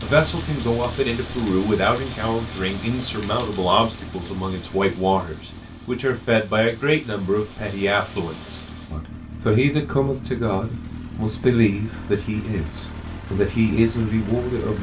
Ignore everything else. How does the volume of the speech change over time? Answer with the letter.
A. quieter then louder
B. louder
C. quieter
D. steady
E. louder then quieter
D.